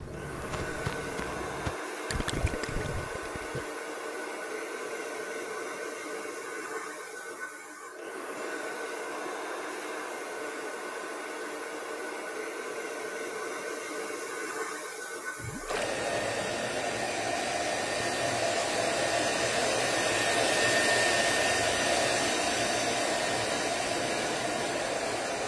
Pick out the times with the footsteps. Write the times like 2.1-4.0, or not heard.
0.0-1.8.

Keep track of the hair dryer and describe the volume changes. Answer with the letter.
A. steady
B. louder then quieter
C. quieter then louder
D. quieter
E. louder
E.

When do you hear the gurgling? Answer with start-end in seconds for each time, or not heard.
2.1-3.6, 15.3-15.9.